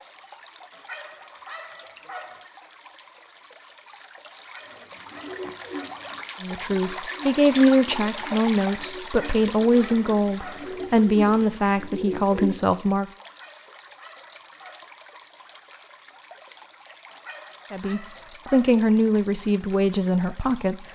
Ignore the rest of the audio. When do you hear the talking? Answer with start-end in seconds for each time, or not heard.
6.4-13.1, 17.7-20.8.